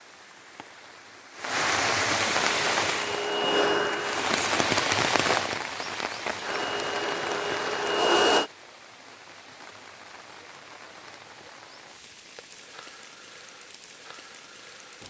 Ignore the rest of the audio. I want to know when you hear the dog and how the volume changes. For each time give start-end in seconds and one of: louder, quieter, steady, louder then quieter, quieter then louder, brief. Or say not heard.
not heard.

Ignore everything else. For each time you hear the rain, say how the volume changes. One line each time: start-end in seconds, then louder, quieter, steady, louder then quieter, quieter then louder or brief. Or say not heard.
0.0-15.0 quieter.